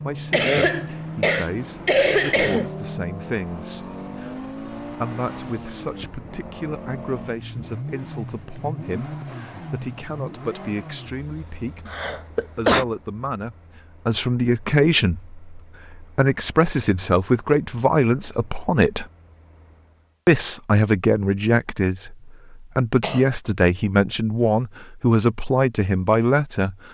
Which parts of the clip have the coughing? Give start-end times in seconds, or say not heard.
0.3-2.7, 11.8-12.8, 23.0-23.7.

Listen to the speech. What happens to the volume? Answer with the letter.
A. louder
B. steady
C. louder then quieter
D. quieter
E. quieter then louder
A.